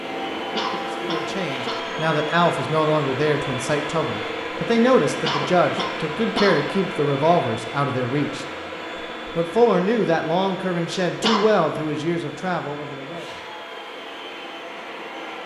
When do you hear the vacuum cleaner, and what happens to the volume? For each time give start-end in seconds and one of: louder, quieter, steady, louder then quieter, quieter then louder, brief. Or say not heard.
0.0-15.4 quieter.